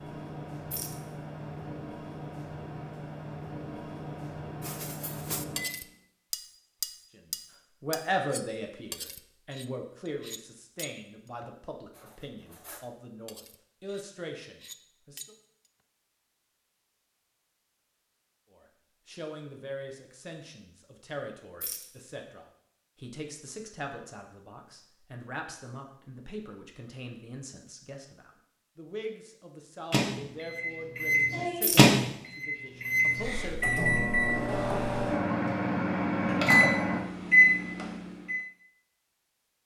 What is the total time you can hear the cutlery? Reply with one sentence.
You can hear the cutlery for 11 seconds altogether.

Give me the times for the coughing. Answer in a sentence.
You can't hear the coughing here.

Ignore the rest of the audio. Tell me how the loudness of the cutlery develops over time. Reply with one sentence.
The loudness of the cutlery goes down, then up.